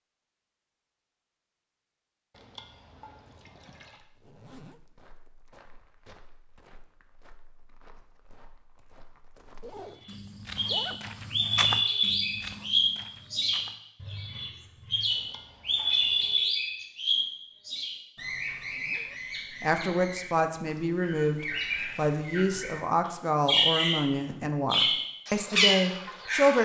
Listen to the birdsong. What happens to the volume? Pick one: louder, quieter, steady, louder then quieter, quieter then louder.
quieter then louder.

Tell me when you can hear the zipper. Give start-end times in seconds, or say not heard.
4.2-4.8, 9.6-11.0, 18.4-19.2.